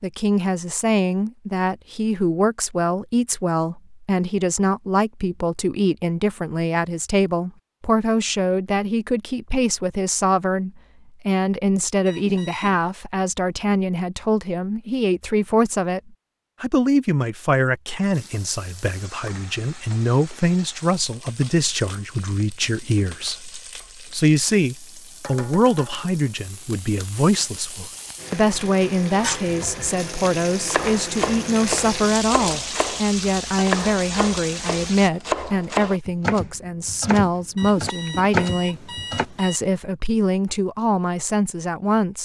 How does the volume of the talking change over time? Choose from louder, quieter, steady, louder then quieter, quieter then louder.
steady.